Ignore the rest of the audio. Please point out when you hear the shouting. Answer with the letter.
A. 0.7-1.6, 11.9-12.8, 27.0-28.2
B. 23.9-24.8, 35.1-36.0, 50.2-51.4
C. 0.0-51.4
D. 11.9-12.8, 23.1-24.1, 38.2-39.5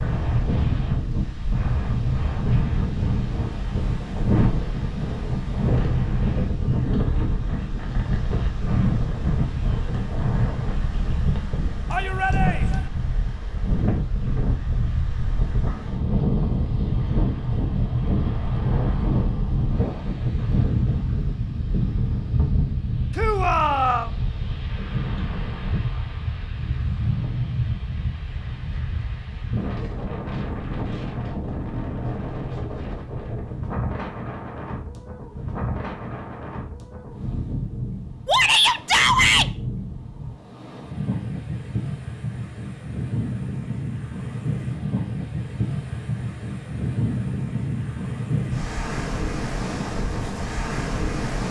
D.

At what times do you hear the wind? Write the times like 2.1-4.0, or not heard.
0.0-51.4.